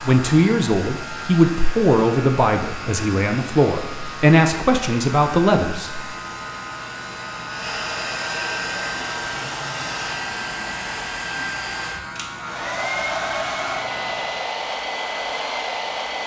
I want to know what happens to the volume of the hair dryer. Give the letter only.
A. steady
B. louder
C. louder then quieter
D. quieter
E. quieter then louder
B.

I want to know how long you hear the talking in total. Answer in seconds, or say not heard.
6 s.